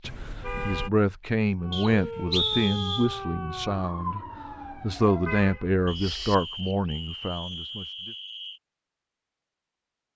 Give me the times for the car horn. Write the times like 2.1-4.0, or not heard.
0.0-0.9, 5.2-6.3.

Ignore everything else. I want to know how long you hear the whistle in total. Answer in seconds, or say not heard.
4 s.